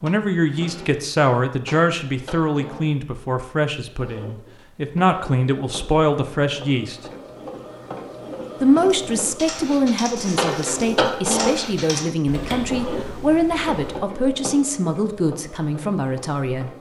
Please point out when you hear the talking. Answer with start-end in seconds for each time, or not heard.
0.0-7.0, 8.6-16.7.